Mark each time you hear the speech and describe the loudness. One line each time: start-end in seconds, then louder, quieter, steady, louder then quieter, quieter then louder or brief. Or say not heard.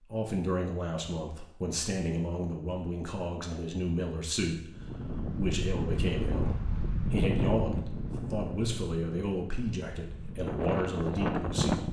0.1-11.8 steady.